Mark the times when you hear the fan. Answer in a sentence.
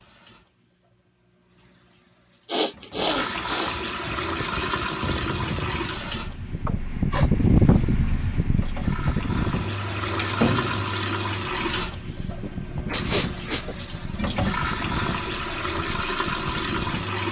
The fan can be heard from 4.0 to 17.2 s.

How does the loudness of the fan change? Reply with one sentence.
The volume of the fan goes up, then down.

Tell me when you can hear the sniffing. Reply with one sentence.
You can hear the sniffing from 2.5 to 3.8 s, from 6.7 to 7.3 s and from 12.4 to 13.8 s.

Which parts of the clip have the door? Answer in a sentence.
The door can be heard from 10.1 to 10.9 s.